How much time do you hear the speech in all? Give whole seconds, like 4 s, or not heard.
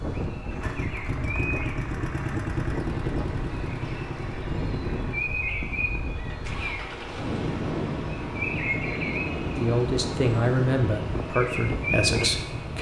3 s.